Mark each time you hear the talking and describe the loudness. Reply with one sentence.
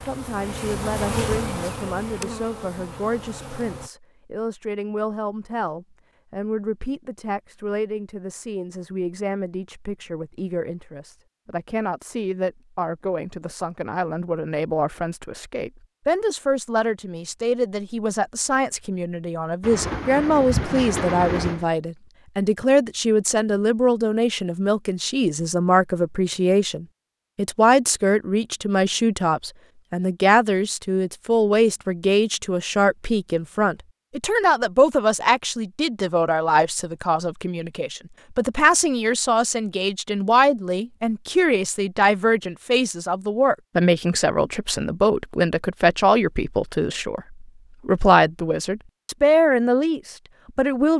You can hear the talking from 0.0 to 50.9 s, getting louder.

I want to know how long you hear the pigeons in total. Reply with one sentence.
You can hear the pigeons for 2 seconds altogether.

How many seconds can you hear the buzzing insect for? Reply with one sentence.
The buzzing insect can be heard for 4 seconds in total.